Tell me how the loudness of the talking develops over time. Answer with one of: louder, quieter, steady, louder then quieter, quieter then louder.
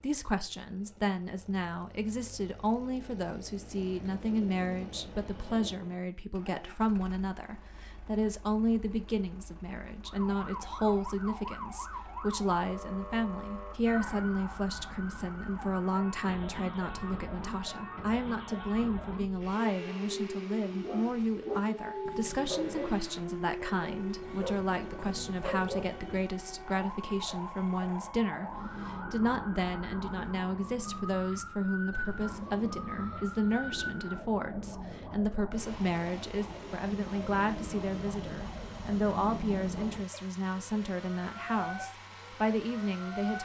steady.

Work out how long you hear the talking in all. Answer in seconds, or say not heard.
43 s.